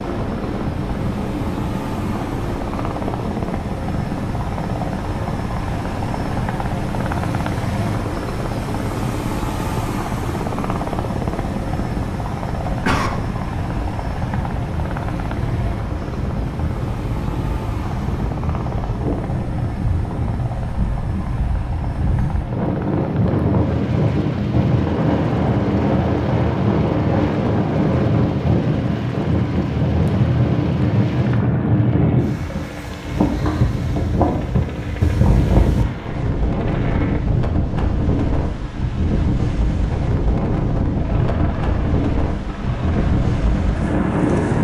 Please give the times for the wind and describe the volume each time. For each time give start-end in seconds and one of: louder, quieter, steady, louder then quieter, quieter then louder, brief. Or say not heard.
0.0-44.5 louder.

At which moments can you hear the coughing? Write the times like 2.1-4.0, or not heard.
12.7-13.1.